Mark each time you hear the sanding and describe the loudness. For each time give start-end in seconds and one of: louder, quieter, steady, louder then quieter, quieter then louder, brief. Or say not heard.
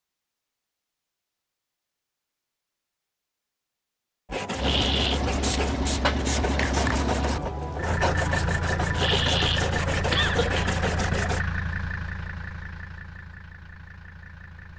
4.2-11.4 steady.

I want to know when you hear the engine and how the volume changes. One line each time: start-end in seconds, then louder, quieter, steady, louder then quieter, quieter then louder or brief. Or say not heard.
4.5-14.7 quieter.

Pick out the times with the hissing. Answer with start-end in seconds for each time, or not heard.
5.3-7.0.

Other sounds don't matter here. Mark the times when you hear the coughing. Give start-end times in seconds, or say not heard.
4.5-5.2, 8.9-10.7.